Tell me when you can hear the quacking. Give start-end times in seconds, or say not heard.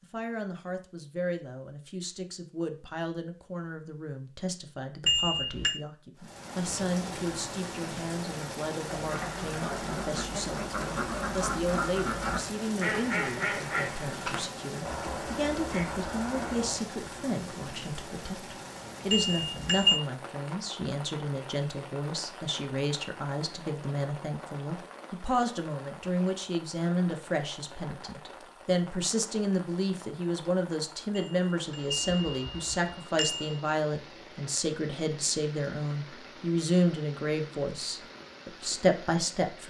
8.9-16.9.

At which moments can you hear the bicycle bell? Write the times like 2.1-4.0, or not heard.
5.0-5.8, 19.1-20.0, 31.1-33.6.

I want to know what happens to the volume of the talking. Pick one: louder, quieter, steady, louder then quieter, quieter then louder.
louder.